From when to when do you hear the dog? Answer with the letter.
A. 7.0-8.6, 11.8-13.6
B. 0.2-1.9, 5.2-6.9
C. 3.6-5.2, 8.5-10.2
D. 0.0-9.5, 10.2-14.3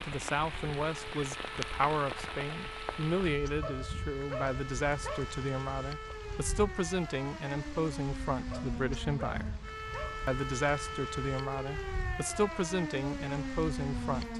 C.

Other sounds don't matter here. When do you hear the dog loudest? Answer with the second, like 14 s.
4 s.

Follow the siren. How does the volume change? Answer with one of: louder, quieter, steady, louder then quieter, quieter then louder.
louder.